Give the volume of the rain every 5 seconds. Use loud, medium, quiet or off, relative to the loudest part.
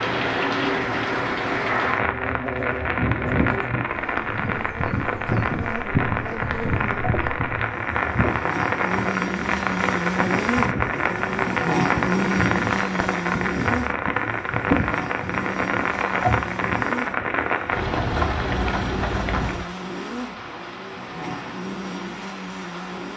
loud, loud, loud, loud, quiet.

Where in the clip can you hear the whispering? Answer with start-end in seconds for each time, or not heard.
not heard.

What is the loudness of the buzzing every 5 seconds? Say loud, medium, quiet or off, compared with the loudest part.
medium, medium, loud, medium, medium.